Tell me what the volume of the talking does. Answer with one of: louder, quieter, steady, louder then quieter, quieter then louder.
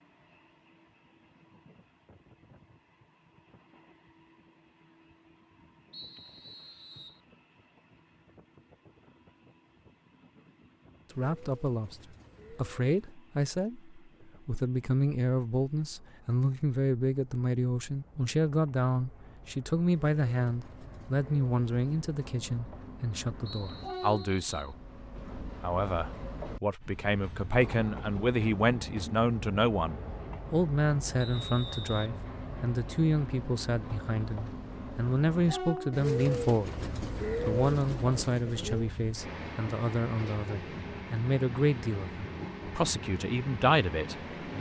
steady.